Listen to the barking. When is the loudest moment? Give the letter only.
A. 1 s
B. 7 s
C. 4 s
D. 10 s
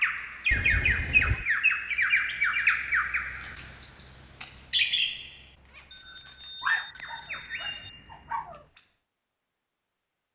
B.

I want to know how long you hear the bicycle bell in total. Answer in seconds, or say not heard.
3 s.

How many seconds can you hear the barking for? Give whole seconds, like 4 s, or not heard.
2 s.